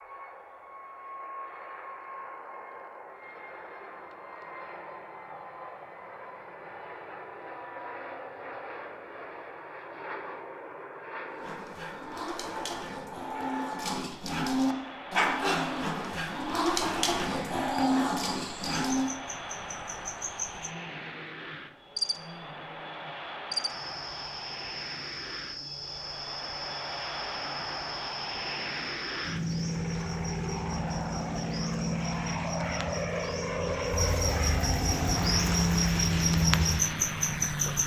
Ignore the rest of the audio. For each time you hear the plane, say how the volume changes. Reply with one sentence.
You can hear the plane from 0.0 to 37.8 s, getting louder.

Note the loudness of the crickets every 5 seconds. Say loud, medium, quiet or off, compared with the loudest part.
off, off, off, quiet, medium, medium, medium, loud.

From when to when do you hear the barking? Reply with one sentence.
You can hear the barking from 11.3 to 19.1 s.